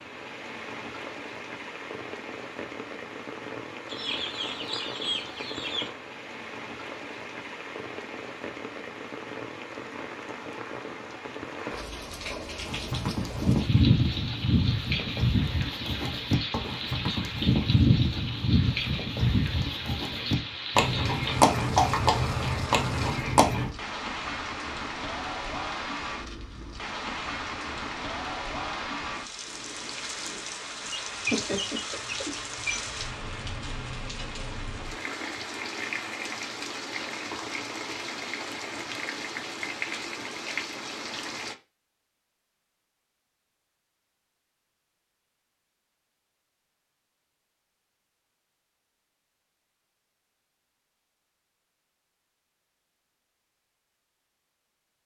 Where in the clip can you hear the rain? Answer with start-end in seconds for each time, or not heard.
0.0-41.5.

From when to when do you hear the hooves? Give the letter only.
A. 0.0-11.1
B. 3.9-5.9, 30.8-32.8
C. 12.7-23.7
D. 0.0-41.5
C.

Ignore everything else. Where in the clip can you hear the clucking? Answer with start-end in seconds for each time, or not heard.
3.9-5.9, 30.8-32.8.